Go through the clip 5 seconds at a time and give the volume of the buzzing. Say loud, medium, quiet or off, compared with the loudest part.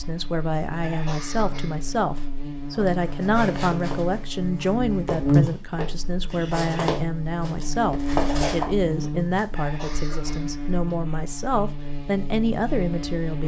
medium, loud, medium.